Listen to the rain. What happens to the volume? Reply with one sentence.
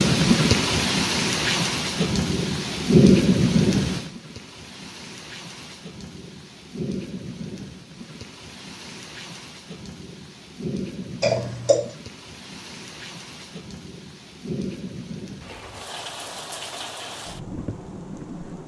The loudness of the rain goes down.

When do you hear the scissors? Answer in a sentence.
You can hear the scissors from 11.2 to 11.8 s.